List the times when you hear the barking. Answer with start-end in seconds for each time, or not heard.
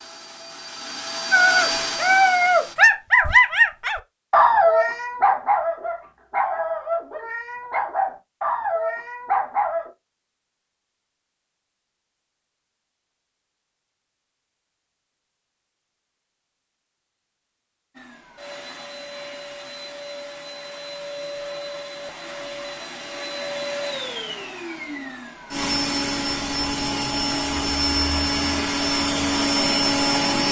1.3-9.9.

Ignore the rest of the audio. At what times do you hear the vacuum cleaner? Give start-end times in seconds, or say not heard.
0.0-2.8, 17.9-30.4.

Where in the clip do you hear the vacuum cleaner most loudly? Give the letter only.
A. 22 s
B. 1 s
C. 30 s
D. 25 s
C.